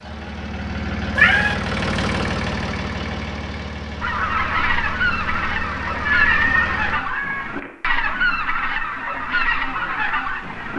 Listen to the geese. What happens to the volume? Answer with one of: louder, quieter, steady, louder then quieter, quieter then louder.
steady.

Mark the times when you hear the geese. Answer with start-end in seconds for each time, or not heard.
4.0-10.7.